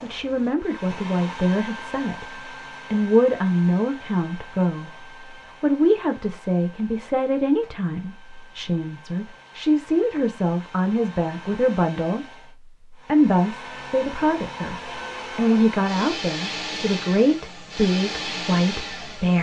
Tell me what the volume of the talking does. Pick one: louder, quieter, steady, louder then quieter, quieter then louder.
steady.